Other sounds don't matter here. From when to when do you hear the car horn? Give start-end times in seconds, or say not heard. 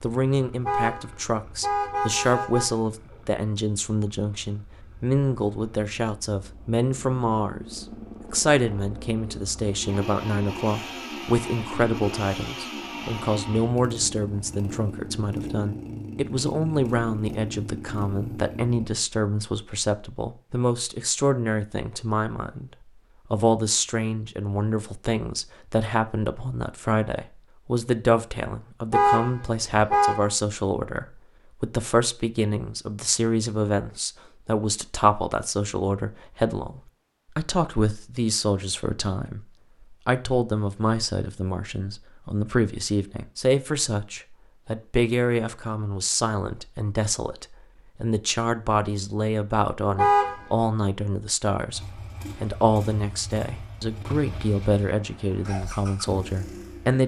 0.6-3.1, 28.9-30.3, 50.0-50.5.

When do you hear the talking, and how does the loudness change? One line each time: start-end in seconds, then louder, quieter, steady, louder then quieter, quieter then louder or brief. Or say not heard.
0.0-22.7 steady
23.3-57.0 steady.